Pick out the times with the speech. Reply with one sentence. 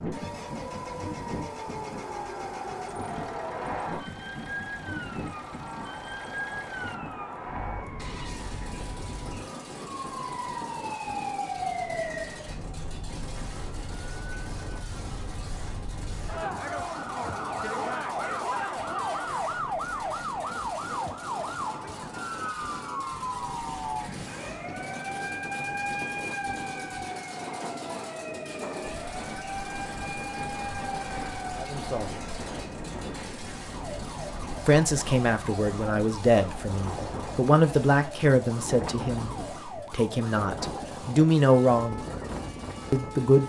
You can hear the speech from 31.6 to 32.1 s, from 34.6 to 42.0 s and from 42.9 to 43.4 s.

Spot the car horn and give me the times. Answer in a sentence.
The car horn can't be heard in this clip.